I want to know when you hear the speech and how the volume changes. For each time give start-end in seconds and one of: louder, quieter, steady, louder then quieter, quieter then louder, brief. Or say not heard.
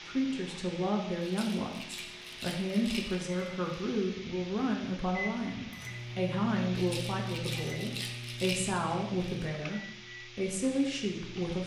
0.1-11.6 steady.